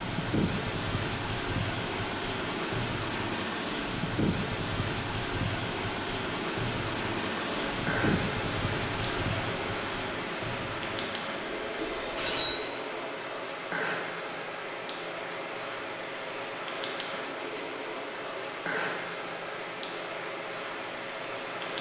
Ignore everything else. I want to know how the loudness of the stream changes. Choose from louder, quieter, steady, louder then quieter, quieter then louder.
quieter.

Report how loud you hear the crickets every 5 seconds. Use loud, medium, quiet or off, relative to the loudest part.
off, loud, loud, loud, loud.